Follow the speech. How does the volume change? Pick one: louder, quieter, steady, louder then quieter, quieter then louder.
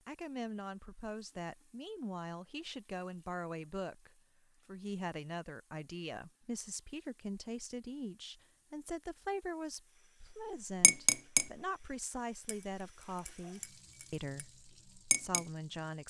steady.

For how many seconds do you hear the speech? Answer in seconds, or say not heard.
16 s.